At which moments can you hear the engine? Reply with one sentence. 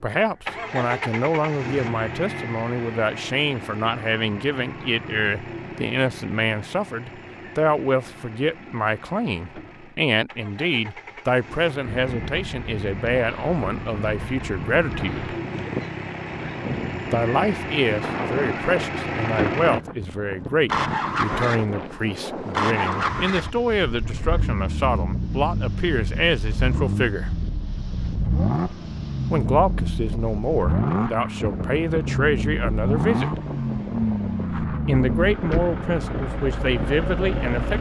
The engine can be heard from 0.5 to 37.7 s.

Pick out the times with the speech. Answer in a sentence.
The speech can be heard from 0.0 to 15.3 s, from 17.1 to 27.3 s, from 29.3 to 33.4 s and from 34.9 to 37.7 s.